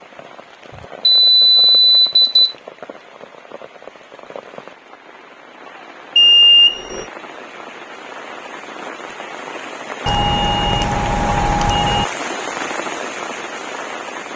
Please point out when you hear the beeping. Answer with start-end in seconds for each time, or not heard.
1.1-2.5, 6.2-7.1, 10.1-12.1.